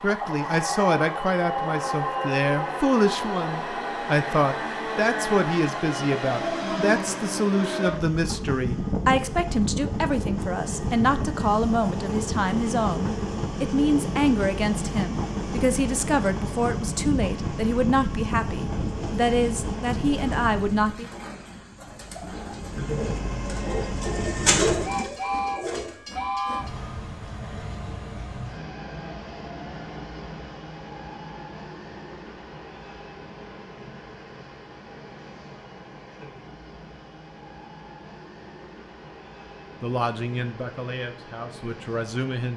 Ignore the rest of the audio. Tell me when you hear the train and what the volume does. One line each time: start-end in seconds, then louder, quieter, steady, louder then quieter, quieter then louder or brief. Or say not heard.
0.0-21.0 steady
22.6-42.5 quieter.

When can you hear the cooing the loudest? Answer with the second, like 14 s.
25 s.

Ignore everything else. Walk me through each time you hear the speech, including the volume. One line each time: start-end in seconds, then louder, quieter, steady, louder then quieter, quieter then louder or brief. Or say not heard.
0.0-21.1 steady
39.8-42.5 brief.